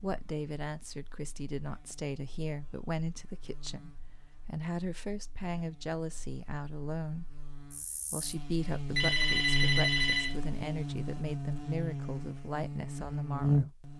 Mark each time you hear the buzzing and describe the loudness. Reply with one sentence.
The buzzing can be heard from 0.0 to 13.9 s, getting louder.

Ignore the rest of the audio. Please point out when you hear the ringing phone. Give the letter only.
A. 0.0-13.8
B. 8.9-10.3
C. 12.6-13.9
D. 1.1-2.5
B.